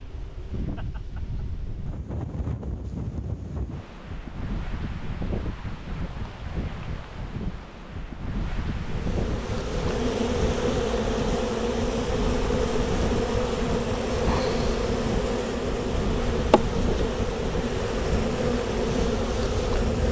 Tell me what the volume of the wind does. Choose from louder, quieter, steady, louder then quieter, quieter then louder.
steady.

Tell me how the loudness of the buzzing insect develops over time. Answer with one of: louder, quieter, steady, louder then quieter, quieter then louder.
steady.